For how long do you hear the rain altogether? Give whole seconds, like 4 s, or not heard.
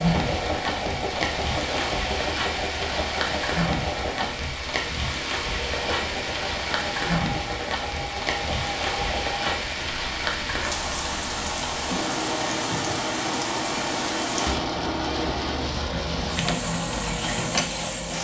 18 s.